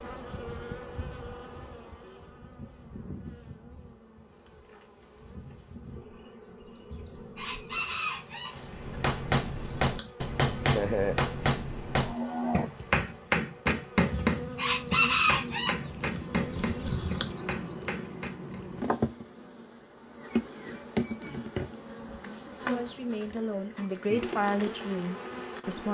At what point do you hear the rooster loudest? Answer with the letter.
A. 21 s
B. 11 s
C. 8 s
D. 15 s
D.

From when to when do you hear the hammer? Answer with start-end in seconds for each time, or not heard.
8.6-18.6.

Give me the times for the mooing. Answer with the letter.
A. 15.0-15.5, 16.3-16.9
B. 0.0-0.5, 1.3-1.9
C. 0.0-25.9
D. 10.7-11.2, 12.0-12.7
D.